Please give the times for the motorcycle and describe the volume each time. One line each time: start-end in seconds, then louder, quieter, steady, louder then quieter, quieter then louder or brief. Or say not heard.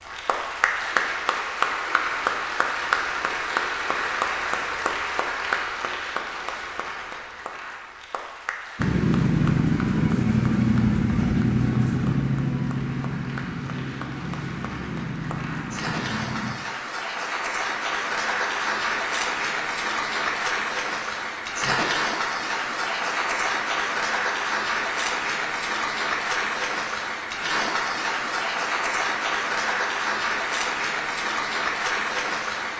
8.8-16.6 quieter.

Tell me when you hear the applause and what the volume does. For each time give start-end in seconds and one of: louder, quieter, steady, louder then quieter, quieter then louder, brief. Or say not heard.
0.0-32.7 quieter then louder.